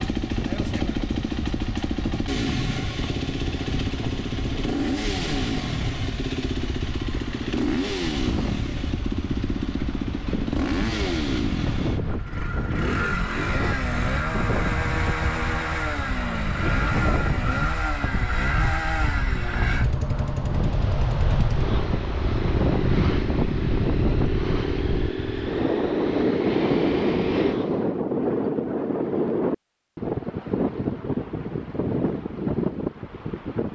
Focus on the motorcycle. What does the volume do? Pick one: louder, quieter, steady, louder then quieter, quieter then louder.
steady.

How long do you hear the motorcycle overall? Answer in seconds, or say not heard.
28 s.